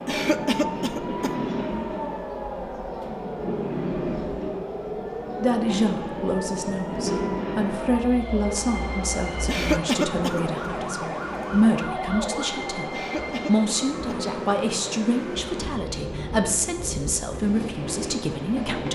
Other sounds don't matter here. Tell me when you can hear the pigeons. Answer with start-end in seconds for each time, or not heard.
not heard.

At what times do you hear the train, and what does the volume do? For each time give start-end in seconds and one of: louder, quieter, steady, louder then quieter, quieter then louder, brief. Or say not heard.
0.0-18.8 steady.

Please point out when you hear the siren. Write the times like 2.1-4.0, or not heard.
0.0-12.5.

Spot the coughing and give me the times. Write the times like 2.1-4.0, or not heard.
0.1-1.4, 9.4-10.4, 12.9-14.2.